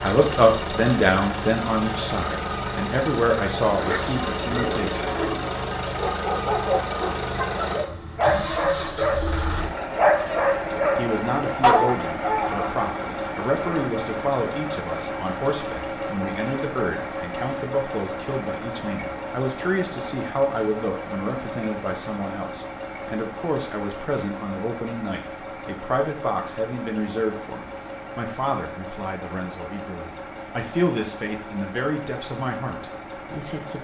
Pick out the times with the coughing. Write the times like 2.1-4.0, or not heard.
not heard.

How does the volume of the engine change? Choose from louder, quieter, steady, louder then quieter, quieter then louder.
quieter.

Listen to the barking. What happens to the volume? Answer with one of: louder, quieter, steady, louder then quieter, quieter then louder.
louder.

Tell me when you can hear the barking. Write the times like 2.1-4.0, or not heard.
3.7-12.8.